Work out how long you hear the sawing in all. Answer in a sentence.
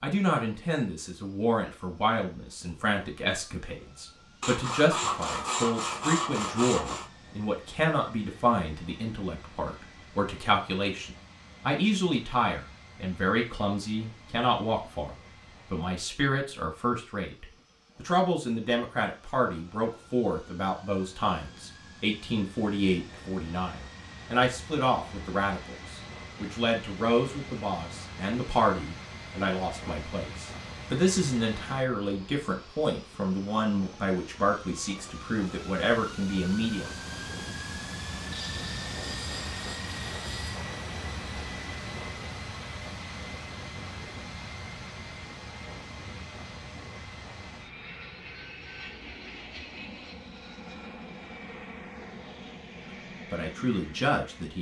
The sawing can be heard for 5 seconds in total.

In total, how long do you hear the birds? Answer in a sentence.
You can't hear the birds here.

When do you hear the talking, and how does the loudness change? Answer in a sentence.
You can hear the talking from 0.0 to 36.9 s, at a steady volume; and briefly from 53.3 to 54.5 s.